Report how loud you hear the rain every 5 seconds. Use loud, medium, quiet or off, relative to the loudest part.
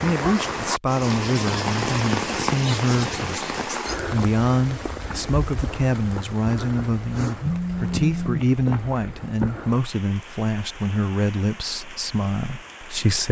loud, medium, quiet.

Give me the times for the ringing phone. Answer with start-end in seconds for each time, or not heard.
7.4-8.4.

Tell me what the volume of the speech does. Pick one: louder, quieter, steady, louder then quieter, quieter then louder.
steady.